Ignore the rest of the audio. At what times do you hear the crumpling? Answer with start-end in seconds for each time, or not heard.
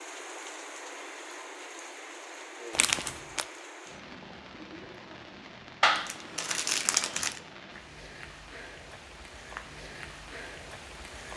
2.8-3.5, 5.8-7.4.